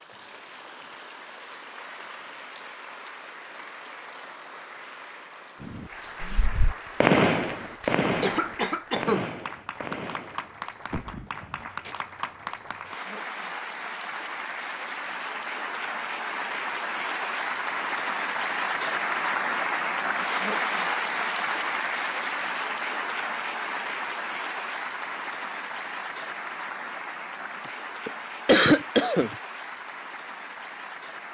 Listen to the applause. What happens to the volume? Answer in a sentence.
The loudness of the applause goes up, then down.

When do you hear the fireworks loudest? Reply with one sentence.
The volume of the fireworks peaks at 7 seconds.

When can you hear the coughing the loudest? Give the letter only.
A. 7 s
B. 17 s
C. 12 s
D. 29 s
D.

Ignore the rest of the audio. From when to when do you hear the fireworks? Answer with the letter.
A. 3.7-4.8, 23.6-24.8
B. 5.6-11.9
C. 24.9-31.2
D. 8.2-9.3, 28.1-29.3
B.